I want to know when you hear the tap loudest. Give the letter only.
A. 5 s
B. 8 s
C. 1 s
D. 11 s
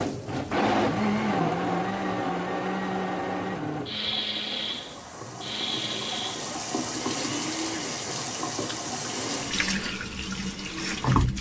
D.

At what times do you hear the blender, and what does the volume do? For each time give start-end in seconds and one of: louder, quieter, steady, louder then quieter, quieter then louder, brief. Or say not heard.
0.0-11.3 quieter.